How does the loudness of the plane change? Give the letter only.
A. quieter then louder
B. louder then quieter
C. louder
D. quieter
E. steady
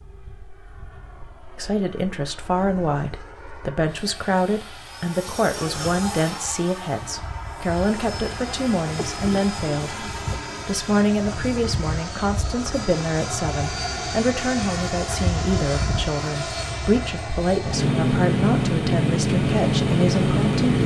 C.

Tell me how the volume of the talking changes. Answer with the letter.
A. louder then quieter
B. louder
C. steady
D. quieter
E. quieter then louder
C.